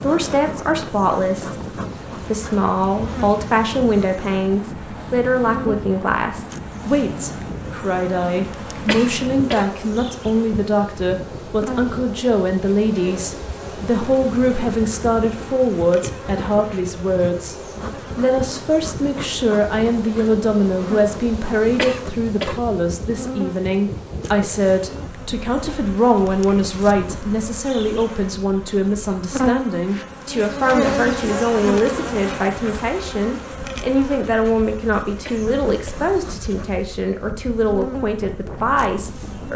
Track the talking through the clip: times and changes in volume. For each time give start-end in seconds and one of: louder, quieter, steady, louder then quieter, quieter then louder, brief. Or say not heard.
0.0-1.6 brief
2.2-17.6 steady
18.1-39.5 steady.